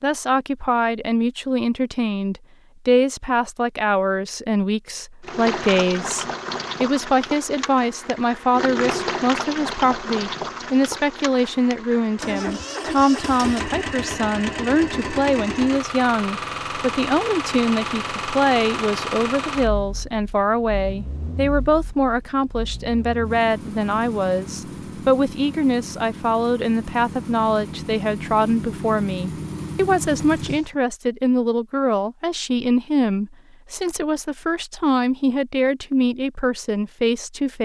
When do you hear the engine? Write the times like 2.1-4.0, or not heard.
5.2-30.8.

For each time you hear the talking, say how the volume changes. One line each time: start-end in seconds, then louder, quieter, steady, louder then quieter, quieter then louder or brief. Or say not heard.
0.0-37.6 steady.